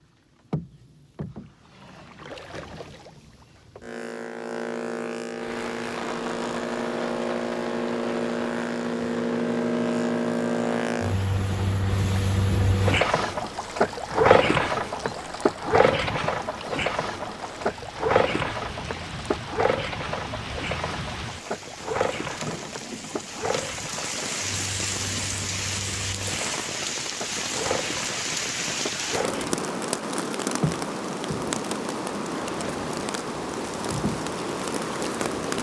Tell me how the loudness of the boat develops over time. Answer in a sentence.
The volume of the boat goes up, then down.